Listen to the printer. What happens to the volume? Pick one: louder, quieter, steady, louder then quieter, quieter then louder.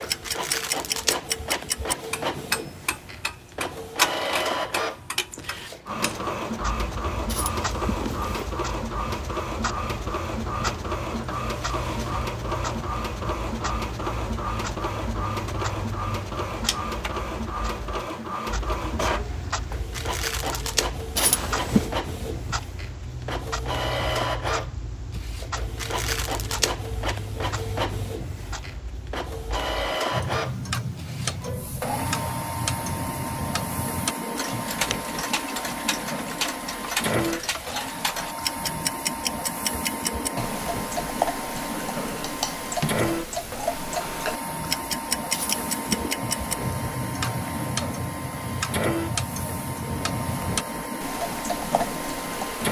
steady.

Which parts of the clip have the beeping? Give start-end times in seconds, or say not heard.
7.2-8.6, 21.1-21.9, 45.3-46.1.